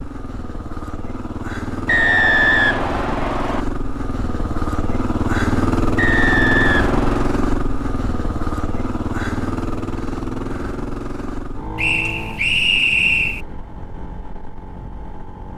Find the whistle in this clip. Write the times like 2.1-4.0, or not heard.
1.9-3.6, 6.0-7.4, 11.8-13.4.